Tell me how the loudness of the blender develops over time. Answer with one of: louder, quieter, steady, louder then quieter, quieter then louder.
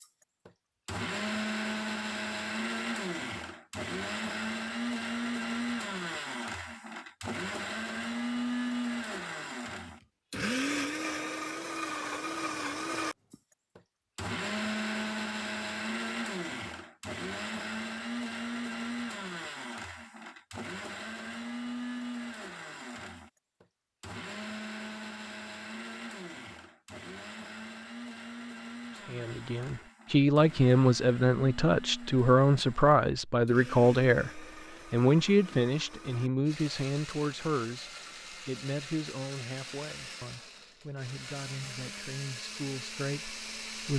quieter.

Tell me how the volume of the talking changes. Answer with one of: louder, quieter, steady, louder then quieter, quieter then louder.
quieter.